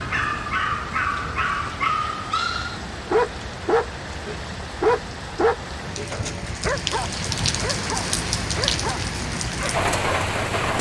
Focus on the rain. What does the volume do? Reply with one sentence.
The volume of the rain goes up.